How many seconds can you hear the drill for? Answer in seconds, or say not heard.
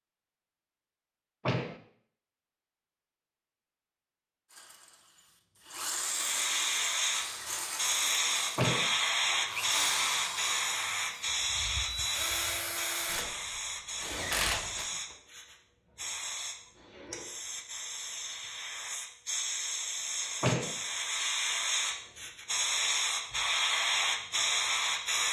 10 s.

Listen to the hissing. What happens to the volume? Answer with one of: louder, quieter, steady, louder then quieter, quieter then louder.
quieter then louder.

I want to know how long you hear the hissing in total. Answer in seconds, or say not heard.
19 s.